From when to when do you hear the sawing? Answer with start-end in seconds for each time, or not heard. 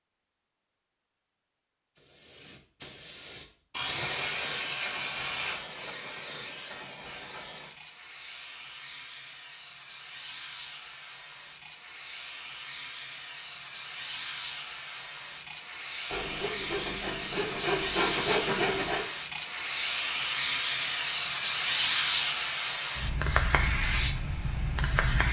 3.7-5.6, 16.1-19.1.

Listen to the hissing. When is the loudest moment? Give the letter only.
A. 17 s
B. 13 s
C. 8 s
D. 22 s
D.